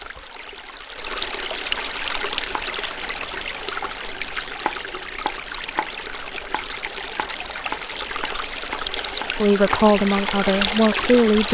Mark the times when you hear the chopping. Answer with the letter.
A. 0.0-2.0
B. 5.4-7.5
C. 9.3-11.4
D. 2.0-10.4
D.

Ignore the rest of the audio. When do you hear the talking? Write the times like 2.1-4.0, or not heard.
9.3-11.4.